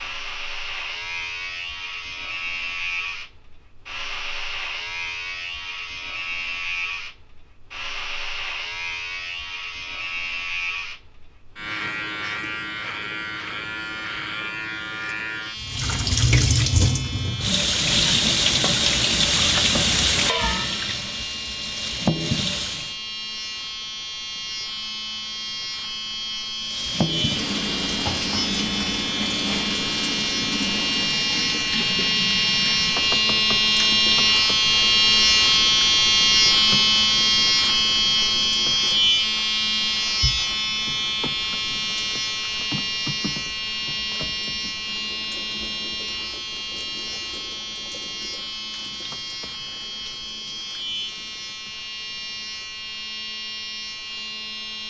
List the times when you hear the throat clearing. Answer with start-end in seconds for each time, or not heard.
not heard.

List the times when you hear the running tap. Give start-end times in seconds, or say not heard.
15.6-22.9, 26.6-51.8.